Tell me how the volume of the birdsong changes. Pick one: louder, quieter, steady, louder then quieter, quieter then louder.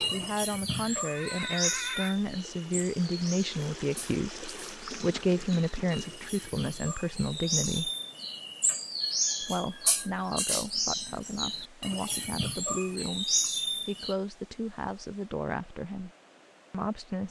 quieter then louder.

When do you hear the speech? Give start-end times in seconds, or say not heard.
0.1-7.9, 9.4-16.1, 16.7-17.2.